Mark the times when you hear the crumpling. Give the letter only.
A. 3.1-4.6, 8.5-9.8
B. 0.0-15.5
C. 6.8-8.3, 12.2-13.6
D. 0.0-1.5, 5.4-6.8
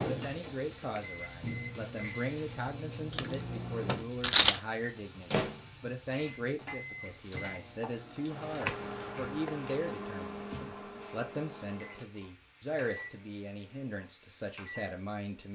A.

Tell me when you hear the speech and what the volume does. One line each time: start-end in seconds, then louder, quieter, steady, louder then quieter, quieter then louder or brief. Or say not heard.
0.0-15.5 steady.